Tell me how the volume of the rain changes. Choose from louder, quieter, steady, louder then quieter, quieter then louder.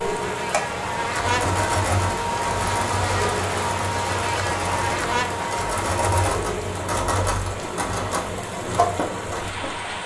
steady.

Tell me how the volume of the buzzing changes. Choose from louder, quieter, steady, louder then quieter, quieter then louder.
steady.